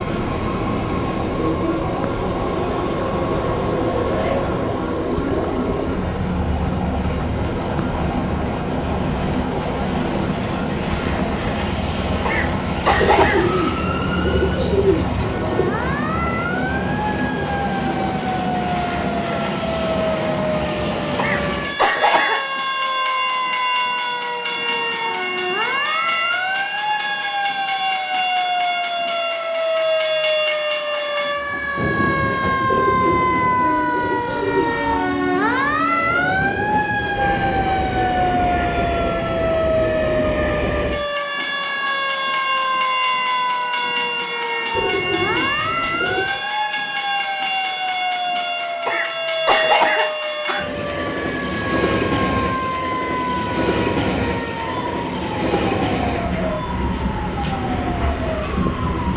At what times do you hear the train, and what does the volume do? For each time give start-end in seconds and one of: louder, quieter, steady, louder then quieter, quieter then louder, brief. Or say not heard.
0.0-59.1 steady.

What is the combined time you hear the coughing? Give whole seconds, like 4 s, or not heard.
4 s.